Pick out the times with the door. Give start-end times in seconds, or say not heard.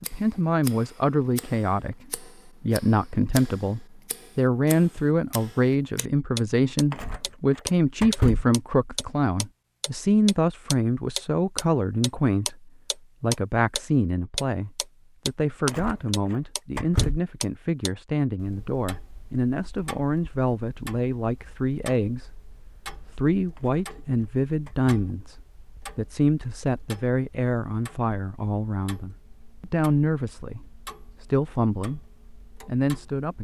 6.9-8.4, 15.7-17.2, 23.6-24.9.